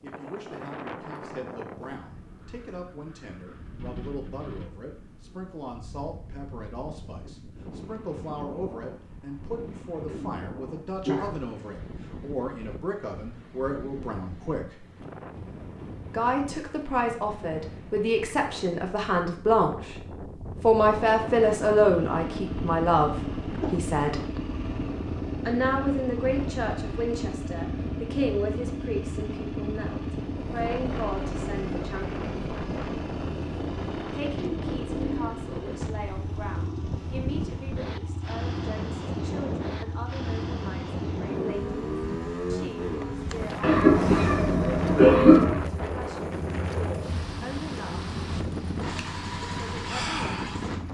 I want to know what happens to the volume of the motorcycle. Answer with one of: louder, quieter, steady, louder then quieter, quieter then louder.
steady.